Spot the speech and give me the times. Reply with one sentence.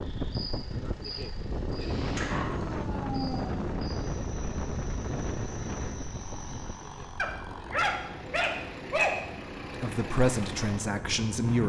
You can hear the speech from 9.8 to 11.6 s.